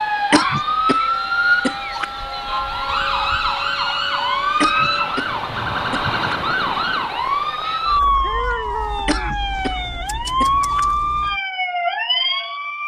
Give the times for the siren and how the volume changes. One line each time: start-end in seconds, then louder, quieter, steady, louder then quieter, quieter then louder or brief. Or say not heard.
0.0-12.8 steady.